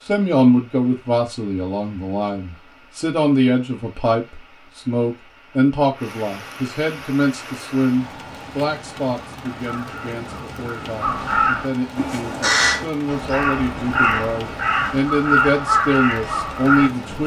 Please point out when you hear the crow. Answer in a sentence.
You can hear the crow from 9.6 to 16.9 s.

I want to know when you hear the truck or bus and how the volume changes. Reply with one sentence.
You can't hear the truck or bus here.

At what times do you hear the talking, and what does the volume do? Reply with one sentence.
You can hear the talking from 0.1 to 17.2 s, getting quieter then louder.